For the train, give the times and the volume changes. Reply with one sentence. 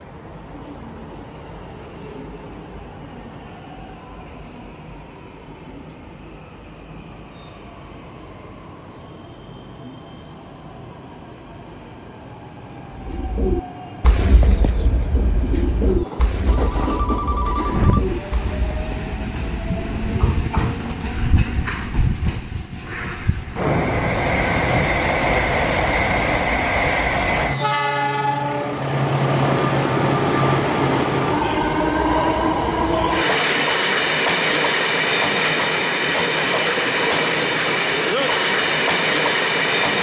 The train can be heard from 0.0 to 39.9 s, getting louder.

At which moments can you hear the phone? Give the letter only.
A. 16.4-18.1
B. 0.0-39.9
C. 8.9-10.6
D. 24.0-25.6
A.